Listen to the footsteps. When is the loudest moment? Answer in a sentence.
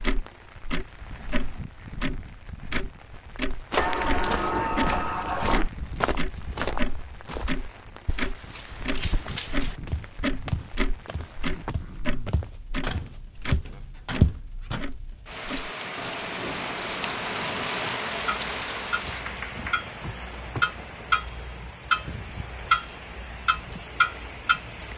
The volume of the footsteps peaks at 14 seconds.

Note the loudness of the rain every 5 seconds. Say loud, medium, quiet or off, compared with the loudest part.
quiet, quiet, quiet, loud, medium.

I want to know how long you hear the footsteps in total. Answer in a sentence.
The footsteps can be heard for 11 seconds in total.